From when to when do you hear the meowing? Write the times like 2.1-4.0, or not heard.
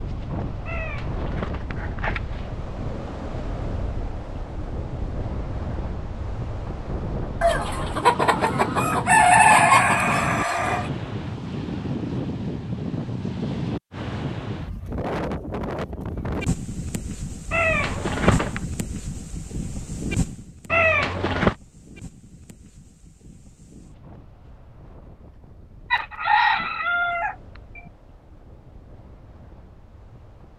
0.7-2.5, 17.5-18.6, 20.7-21.6.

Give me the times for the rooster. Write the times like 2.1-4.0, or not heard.
7.4-10.9, 25.9-27.9.